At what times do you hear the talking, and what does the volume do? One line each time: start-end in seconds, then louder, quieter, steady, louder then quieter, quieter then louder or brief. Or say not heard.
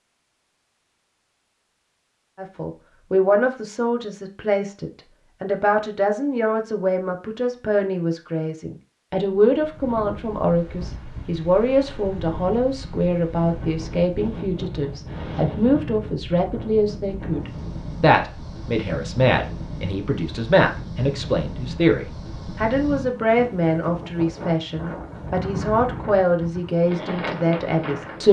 2.4-28.2 steady.